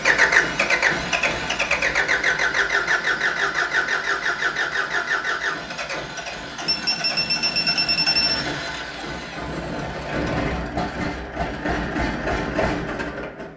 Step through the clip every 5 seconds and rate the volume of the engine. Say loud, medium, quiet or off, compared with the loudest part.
loud, medium, medium.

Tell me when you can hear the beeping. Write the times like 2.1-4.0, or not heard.
6.7-8.4.